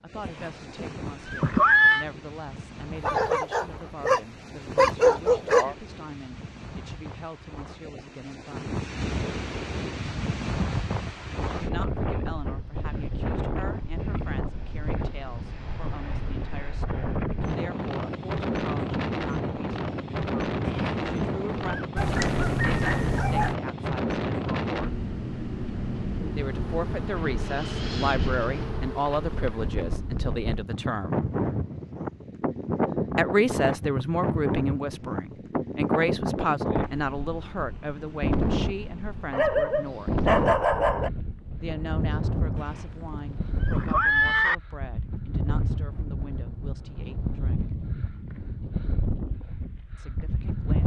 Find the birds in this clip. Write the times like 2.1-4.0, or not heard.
not heard.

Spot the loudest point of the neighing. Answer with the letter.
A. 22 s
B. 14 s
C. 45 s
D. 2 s
D.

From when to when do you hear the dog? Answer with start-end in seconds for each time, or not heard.
3.0-5.8, 21.9-23.6, 39.3-41.1.